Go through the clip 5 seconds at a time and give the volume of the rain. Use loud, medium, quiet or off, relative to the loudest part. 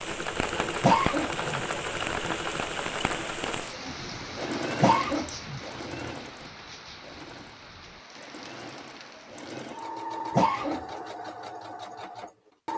loud, medium, off.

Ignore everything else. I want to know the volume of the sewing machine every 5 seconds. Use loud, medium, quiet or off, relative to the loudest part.
loud, medium, loud.